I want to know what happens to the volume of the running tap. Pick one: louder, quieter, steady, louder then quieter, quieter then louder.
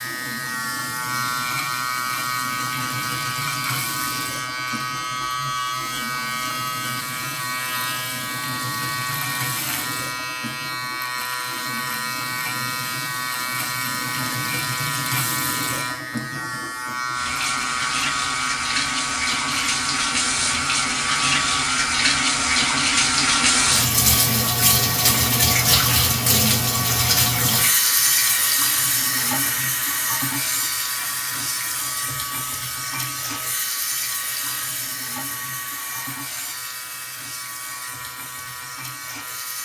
louder then quieter.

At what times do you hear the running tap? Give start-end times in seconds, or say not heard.
0.0-39.6.